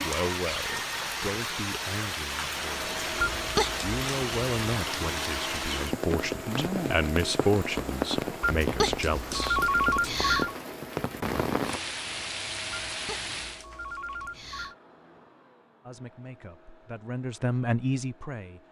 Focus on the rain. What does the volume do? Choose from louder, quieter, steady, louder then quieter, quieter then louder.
steady.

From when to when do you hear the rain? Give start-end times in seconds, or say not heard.
0.0-13.7.